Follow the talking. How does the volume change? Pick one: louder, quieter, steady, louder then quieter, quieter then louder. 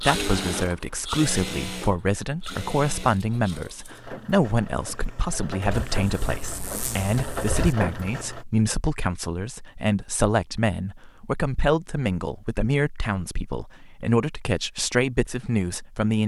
steady.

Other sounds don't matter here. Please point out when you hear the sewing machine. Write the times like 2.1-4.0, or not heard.
0.0-8.4.